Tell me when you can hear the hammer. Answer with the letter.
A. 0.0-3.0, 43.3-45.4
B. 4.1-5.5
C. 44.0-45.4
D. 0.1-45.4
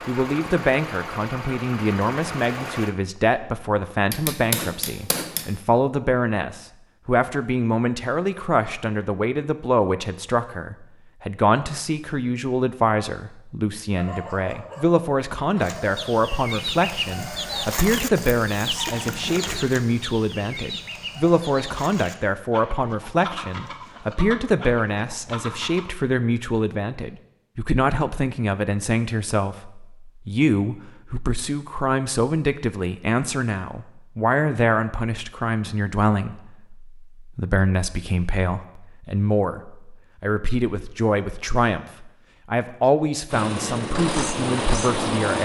B.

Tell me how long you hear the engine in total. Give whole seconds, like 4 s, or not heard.
5 s.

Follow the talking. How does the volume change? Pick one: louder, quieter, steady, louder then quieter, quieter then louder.
steady.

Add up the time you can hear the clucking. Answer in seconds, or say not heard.
10 s.